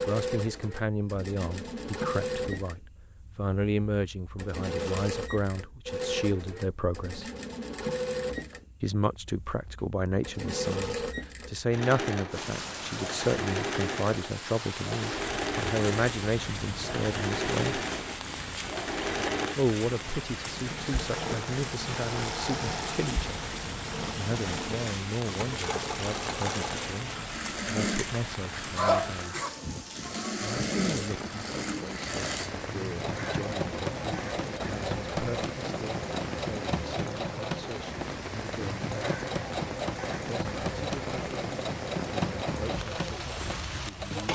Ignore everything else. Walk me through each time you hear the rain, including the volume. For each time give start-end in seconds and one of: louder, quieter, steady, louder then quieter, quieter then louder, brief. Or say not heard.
12.3-44.3 steady.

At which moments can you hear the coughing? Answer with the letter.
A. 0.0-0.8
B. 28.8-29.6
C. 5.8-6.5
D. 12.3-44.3
B.